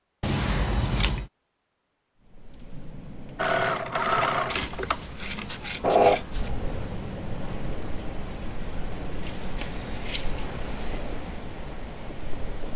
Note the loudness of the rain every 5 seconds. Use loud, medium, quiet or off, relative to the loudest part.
medium, loud, loud.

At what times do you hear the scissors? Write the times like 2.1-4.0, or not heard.
0.2-1.3, 4.5-6.5, 9.2-11.0.